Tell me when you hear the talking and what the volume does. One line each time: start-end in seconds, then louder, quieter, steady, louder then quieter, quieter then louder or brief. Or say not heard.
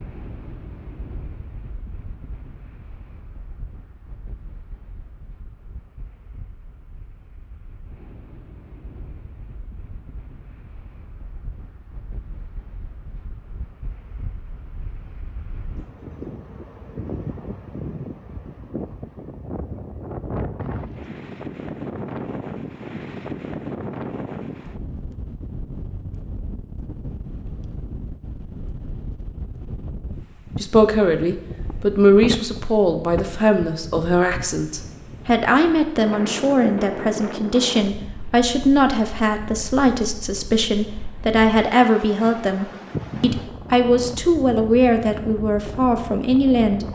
30.6-46.9 steady.